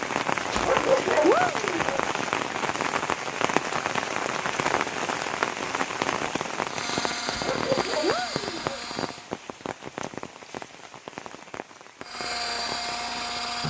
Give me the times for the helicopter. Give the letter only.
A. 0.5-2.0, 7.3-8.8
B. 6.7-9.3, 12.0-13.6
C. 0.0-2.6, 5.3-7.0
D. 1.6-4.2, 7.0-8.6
B.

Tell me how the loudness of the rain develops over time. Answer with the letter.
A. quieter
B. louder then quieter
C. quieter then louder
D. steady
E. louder
A.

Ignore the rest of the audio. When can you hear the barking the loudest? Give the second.
1 s.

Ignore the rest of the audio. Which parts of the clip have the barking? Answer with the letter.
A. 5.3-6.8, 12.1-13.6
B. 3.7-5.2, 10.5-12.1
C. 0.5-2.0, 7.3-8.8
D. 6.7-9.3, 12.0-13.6
C.